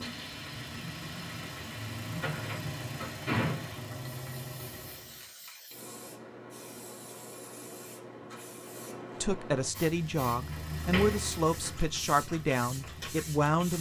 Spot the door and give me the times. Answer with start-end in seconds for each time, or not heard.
2.1-3.8, 10.5-11.8.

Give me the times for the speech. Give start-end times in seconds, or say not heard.
9.2-13.7.